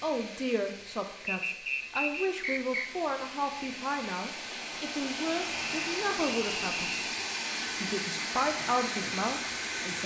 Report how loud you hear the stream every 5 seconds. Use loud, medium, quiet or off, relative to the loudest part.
medium, loud.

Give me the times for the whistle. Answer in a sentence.
You can hear the whistle from 1.2 to 2.9 s and from 5.5 to 7.1 s.